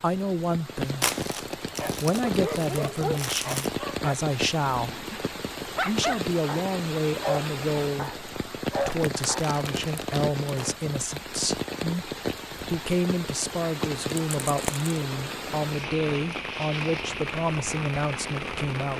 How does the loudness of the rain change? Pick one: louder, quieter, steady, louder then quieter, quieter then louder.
steady.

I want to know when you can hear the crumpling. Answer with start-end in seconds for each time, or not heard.
1.0-3.7, 8.8-10.8, 14.2-14.9.